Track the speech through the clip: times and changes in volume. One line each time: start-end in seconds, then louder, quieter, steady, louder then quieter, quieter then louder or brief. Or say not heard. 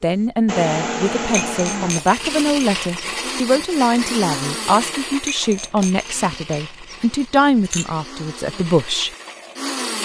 0.0-9.1 steady.